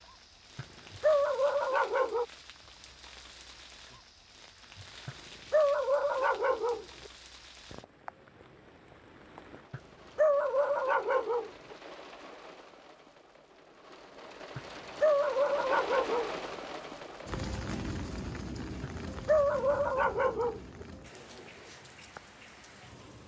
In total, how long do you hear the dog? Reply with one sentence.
You can hear the dog for 10 seconds altogether.